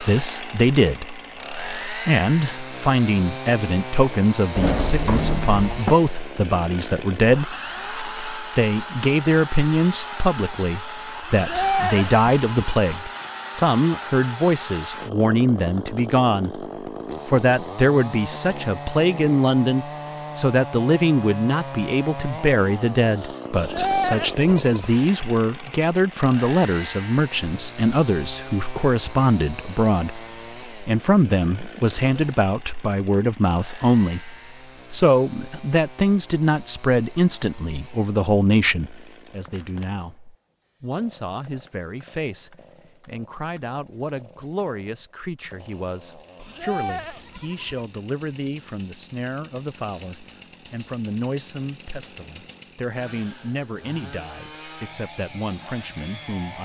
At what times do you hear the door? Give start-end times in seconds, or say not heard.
4.5-6.0.